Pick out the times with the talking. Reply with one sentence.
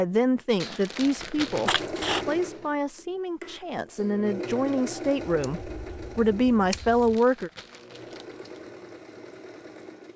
The talking can be heard from 0.0 to 7.5 s.